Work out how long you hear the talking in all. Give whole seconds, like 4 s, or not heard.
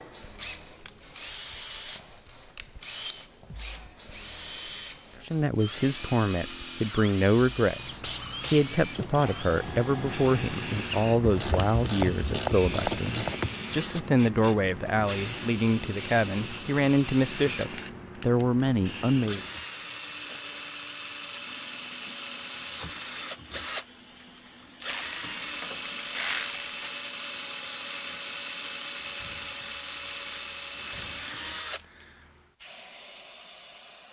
14 s.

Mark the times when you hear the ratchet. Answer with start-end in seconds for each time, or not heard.
11.2-13.5, 24.9-26.9.